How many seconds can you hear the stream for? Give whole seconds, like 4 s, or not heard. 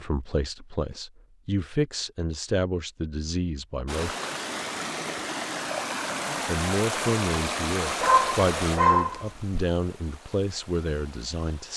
8 s.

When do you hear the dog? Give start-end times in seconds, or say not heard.
8.0-9.7.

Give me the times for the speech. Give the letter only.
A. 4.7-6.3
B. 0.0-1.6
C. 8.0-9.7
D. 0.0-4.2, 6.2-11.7
D.